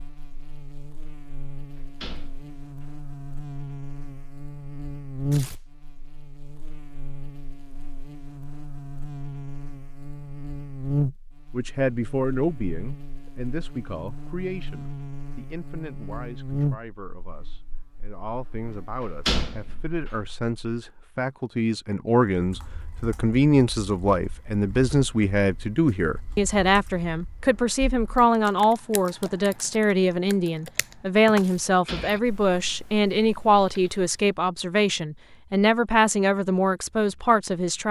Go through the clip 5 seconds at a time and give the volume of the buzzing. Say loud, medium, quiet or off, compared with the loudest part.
medium, loud, loud, loud, off, off, off, off.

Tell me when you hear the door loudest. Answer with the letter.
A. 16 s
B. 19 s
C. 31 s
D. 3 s
B.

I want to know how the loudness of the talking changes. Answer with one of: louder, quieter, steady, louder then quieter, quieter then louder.
louder.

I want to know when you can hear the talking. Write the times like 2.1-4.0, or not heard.
11.5-37.8.